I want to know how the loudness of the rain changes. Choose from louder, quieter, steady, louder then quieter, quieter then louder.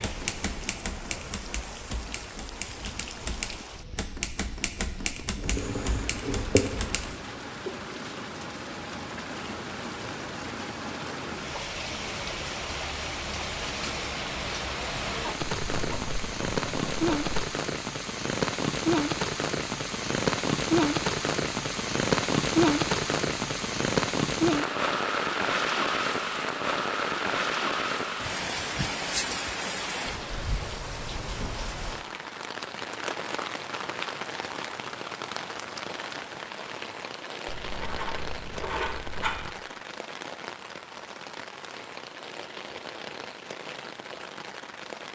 louder then quieter.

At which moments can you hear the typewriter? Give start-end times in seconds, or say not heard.
0.0-7.2.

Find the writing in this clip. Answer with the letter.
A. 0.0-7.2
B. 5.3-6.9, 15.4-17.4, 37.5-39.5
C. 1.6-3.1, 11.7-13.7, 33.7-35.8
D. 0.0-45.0
B.